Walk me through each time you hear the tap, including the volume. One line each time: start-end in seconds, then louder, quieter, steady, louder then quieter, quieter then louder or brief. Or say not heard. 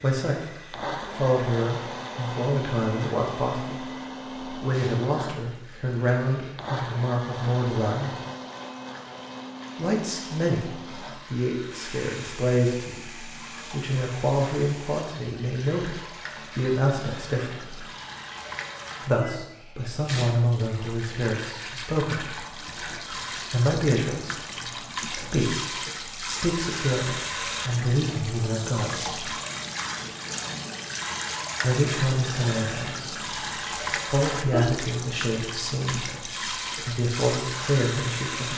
0.0-38.5 louder.